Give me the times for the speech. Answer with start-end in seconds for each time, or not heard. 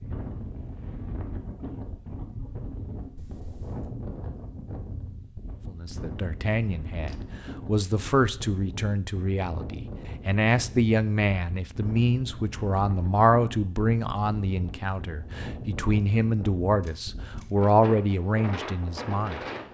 5.7-19.4.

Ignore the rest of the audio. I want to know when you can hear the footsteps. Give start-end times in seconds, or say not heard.
not heard.